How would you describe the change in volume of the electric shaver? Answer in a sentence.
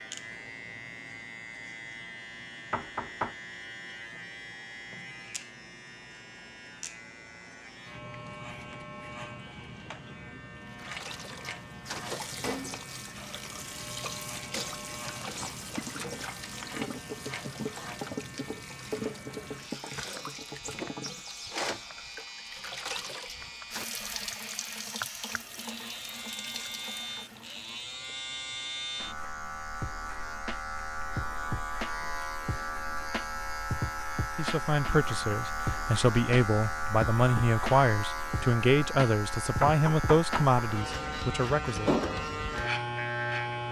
The loudness of the electric shaver goes up.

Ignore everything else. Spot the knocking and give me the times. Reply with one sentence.
You can hear the knocking from 2.7 to 3.4 s and from 39.6 to 40.6 s.